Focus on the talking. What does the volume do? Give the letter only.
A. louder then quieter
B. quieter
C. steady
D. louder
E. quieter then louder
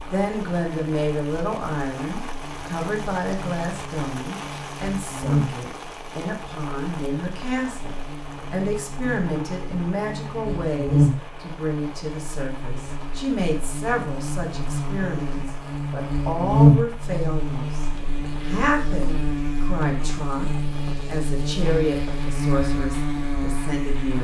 C.